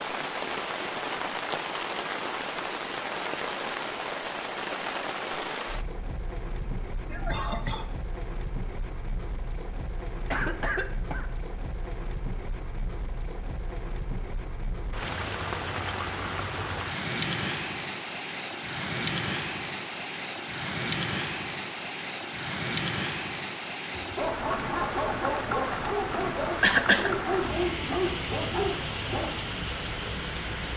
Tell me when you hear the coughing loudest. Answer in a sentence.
The loudest moment of the coughing is at 27 seconds.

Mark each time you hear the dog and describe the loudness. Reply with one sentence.
The dog can be heard from 23.9 to 29.4 s, at a steady volume.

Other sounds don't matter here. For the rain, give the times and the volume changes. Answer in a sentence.
The rain can be heard from 0.0 to 30.7 s, getting quieter then louder.